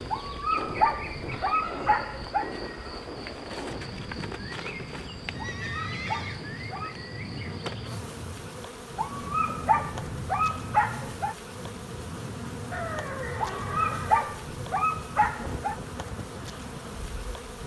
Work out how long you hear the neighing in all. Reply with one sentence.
You can hear the neighing for 3 seconds altogether.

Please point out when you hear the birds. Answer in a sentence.
The birds can't be heard in this clip.